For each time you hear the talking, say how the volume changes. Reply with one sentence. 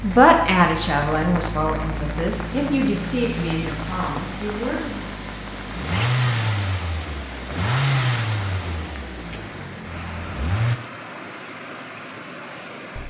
The talking can be heard from 0.0 to 5.1 s, getting quieter.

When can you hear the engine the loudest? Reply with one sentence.
The volume of the engine peaks at 8 seconds.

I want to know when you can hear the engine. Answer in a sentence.
The engine can be heard from 0.0 to 10.8 s.